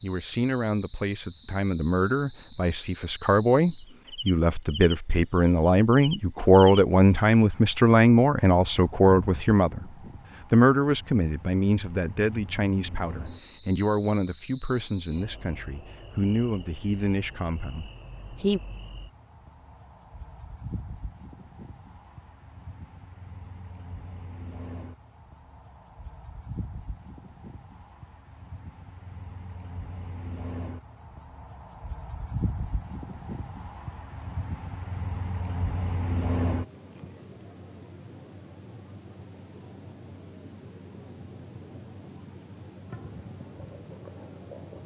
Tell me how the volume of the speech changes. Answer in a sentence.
The loudness of the speech goes up, then down.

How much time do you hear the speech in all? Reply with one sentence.
The speech can be heard for 18 seconds in total.